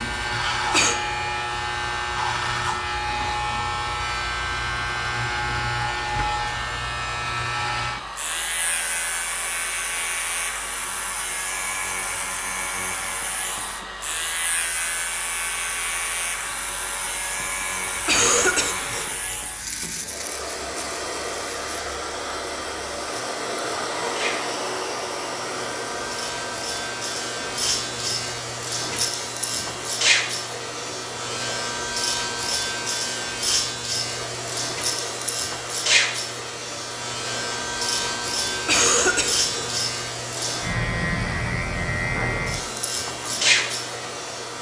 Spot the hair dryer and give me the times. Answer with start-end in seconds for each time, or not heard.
0.0-44.5.